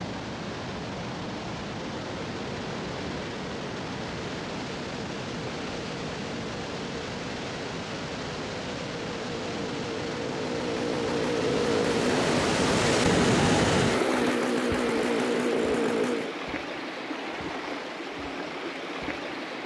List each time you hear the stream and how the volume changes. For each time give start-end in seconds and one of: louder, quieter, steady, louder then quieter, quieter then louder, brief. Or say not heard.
0.0-19.6 louder then quieter.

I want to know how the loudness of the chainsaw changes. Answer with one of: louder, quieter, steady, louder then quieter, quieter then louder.
louder.